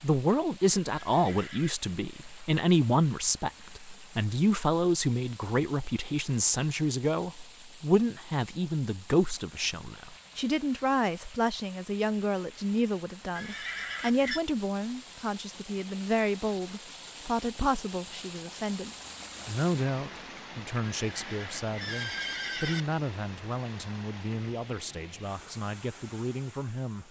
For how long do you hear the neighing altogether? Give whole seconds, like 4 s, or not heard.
4 s.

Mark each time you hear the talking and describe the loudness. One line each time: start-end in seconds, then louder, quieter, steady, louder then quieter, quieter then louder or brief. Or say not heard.
0.0-27.0 quieter.